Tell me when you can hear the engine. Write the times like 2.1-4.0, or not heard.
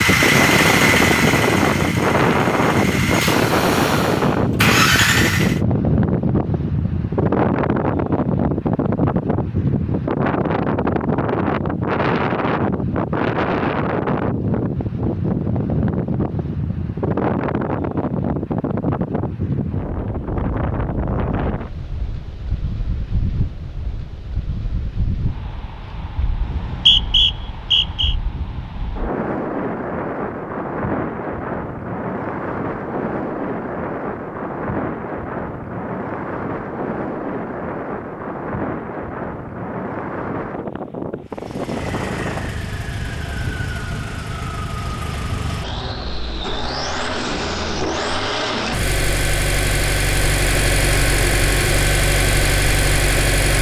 0.0-5.6, 41.2-53.5.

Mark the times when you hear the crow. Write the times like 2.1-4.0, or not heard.
not heard.